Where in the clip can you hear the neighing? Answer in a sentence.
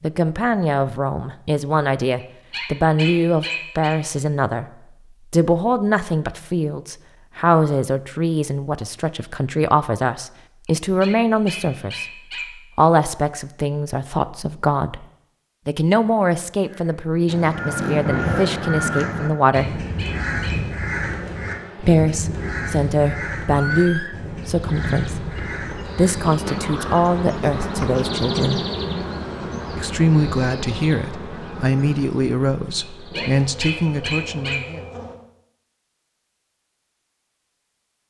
The neighing can be heard from 23.5 to 24.1 s.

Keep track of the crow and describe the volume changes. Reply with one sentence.
The volume of the crow goes down.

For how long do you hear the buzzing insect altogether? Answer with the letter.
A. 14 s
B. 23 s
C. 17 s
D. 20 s
A.